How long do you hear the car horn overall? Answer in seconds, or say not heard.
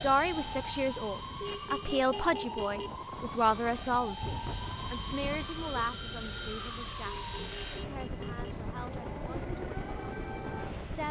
3 s.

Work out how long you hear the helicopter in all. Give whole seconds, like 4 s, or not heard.
11 s.